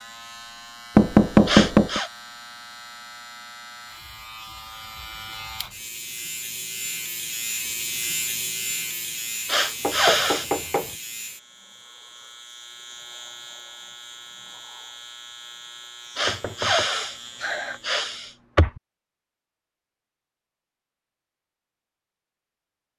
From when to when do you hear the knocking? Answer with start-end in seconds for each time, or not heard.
0.9-2.0, 9.8-10.9, 16.2-16.9.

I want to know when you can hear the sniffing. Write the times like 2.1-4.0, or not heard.
1.4-2.1, 9.4-10.5, 16.1-18.8.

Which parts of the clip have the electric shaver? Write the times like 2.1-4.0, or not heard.
0.0-18.0.